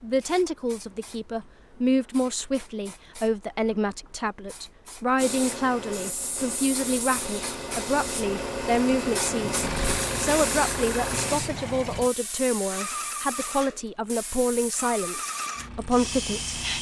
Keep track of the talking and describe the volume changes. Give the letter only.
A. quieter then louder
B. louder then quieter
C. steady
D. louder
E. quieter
C.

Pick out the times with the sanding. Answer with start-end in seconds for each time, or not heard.
5.2-11.4.